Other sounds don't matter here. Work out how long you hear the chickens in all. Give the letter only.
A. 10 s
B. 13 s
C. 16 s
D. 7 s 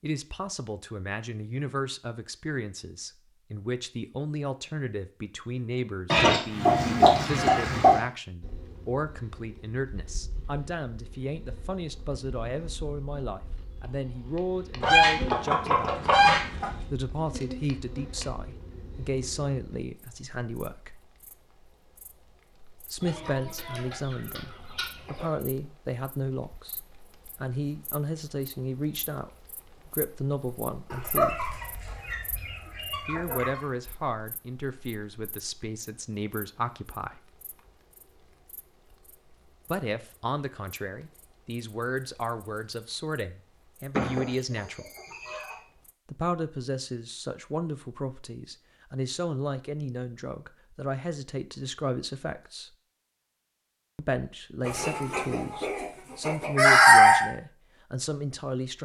B.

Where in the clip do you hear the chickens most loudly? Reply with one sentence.
The volume of the chickens peaks at 57 seconds.